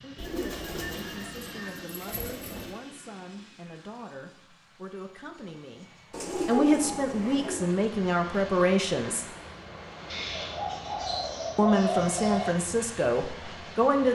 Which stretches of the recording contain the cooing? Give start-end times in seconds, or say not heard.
0.1-2.8, 6.1-7.7, 10.1-12.6.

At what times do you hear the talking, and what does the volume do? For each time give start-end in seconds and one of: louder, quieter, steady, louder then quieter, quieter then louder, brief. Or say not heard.
0.0-9.2 louder
11.6-14.0 brief.